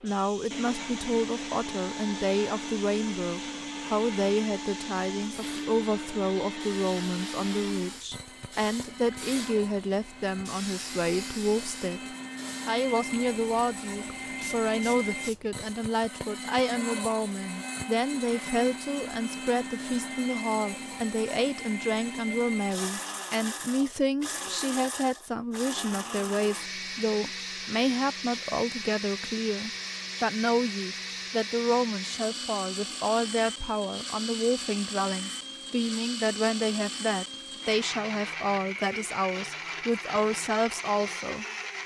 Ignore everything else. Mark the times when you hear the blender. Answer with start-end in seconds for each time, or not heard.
0.0-41.8.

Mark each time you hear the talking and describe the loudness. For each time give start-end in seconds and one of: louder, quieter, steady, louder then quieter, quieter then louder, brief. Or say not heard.
0.0-12.0 steady
12.7-41.8 steady.